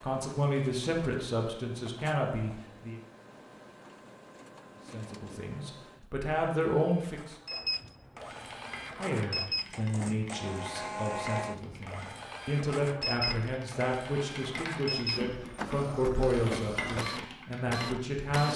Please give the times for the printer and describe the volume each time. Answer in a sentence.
The printer can be heard from 0.0 to 18.5 s, getting louder.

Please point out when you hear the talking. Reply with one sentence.
You can hear the talking from 0.0 to 3.0 s, from 4.9 to 7.3 s and from 8.9 to 18.5 s.